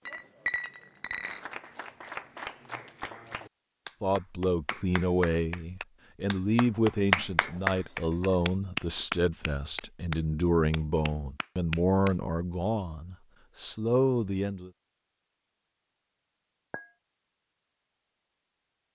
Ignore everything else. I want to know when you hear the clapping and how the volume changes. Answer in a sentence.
You can hear the clapping from 1.2 to 12.2 s, getting louder then quieter.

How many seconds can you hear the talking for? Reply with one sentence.
The talking can be heard for 11 seconds in total.